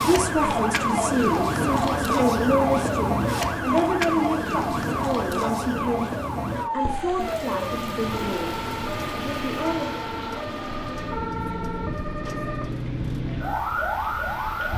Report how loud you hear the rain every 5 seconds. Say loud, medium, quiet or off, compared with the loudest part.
off, loud, medium.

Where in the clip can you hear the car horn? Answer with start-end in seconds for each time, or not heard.
not heard.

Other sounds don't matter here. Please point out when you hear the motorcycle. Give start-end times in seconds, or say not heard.
not heard.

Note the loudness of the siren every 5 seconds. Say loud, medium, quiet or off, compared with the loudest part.
loud, medium, medium.